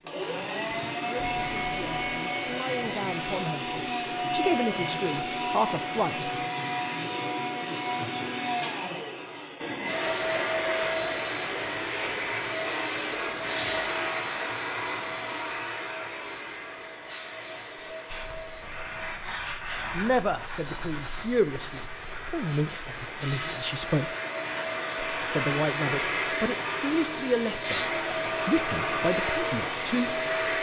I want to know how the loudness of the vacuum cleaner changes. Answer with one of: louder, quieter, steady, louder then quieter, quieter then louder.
quieter then louder.